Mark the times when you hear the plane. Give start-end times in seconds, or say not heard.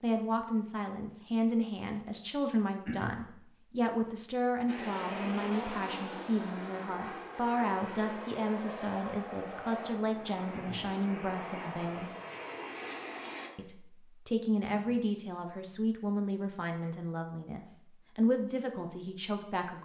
4.7-13.5.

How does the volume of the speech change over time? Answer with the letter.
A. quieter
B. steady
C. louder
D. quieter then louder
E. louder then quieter
B.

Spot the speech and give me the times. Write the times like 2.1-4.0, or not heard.
0.0-12.1, 13.6-19.7.